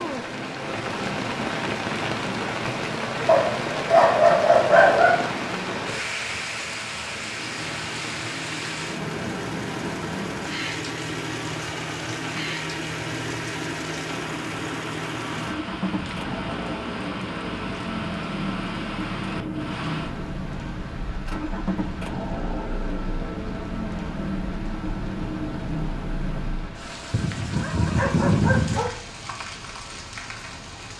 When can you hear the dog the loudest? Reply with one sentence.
The loudest moment of the dog is at 4 seconds.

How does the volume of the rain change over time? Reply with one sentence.
The loudness of the rain goes down.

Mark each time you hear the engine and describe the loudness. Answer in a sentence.
The engine can be heard from 7.2 to 26.9 s, at a steady volume.